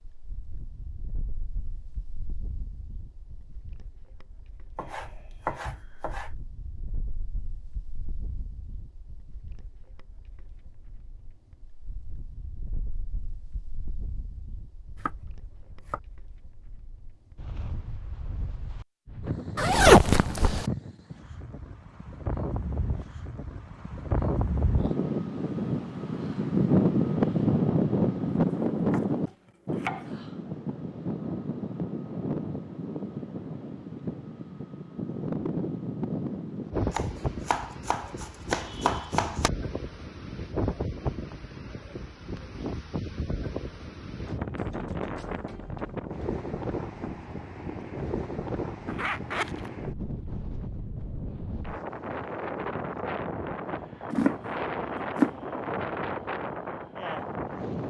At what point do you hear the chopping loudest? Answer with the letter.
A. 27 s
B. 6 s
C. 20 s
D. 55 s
D.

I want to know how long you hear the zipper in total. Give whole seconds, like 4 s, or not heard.
2 s.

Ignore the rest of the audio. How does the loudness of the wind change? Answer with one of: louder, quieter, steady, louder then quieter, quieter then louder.
louder then quieter.